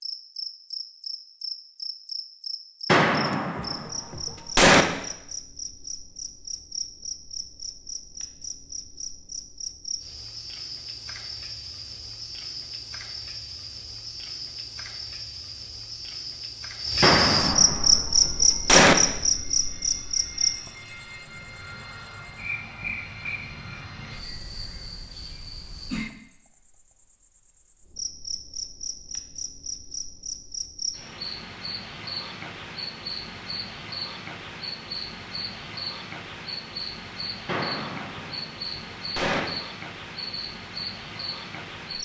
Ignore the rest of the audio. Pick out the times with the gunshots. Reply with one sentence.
You can hear the gunshots from 2.9 to 4.8 s, from 17.0 to 18.9 s and from 37.5 to 39.4 s.